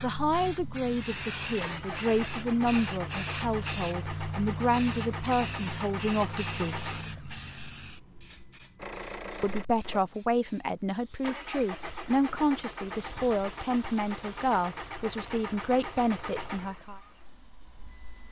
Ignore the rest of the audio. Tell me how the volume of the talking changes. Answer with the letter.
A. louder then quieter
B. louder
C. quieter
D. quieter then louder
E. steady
E.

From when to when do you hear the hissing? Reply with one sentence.
You can hear the hissing from 0.0 to 18.2 s.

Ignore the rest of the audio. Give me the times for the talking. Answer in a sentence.
You can hear the talking from 0.0 to 6.9 s and from 9.4 to 17.0 s.